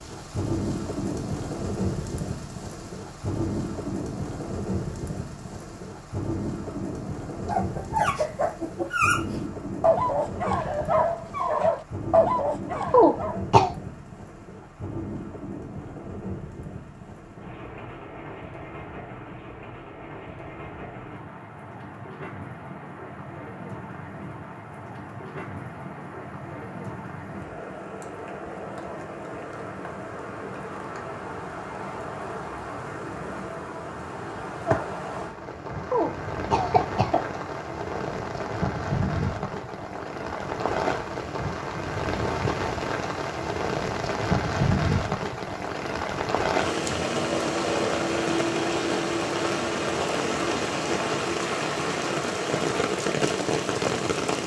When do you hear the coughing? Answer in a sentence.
You can hear the coughing from 12.9 to 13.7 s and from 35.9 to 37.2 s.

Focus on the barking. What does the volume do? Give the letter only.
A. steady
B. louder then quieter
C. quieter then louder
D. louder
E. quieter
A.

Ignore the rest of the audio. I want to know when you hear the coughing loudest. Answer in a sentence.
The loudest moment of the coughing is at 13 seconds.